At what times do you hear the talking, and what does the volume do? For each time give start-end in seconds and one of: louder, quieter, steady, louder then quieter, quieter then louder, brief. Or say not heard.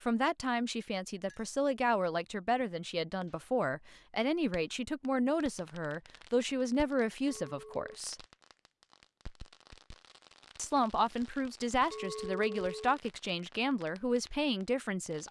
0.0-8.2 steady
10.6-15.2 steady.